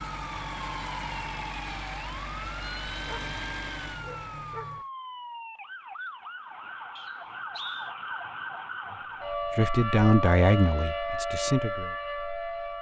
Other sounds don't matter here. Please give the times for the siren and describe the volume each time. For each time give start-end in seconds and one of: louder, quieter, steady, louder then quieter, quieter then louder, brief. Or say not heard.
0.1-12.7 louder.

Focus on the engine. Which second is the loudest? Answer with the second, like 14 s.
1 s.